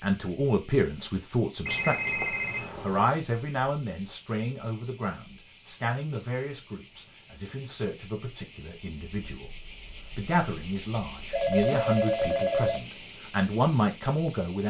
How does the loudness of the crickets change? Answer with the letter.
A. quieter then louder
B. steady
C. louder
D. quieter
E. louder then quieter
C.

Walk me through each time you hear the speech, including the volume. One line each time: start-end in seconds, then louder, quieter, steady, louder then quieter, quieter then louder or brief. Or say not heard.
0.0-14.6 quieter then louder.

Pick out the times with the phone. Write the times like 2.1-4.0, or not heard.
1.6-3.1, 11.3-12.8.